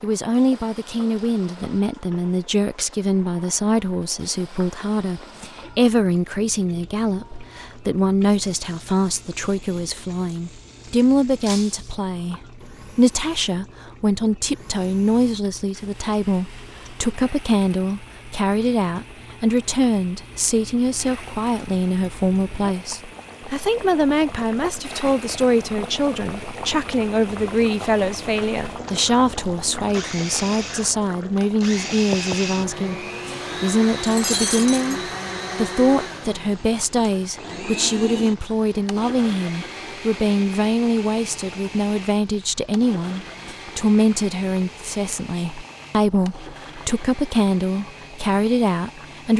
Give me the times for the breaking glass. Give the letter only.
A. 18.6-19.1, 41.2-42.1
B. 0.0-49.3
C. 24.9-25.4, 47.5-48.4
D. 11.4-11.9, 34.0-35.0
D.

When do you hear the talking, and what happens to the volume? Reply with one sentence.
The talking can be heard from 0.0 to 49.3 s, at a steady volume.